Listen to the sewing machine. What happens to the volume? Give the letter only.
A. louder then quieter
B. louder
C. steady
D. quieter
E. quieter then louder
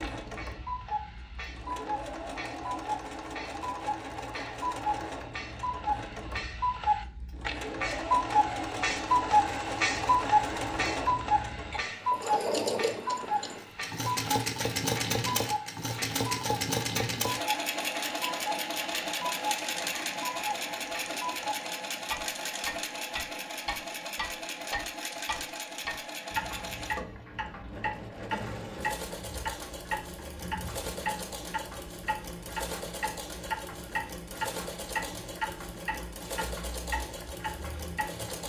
A.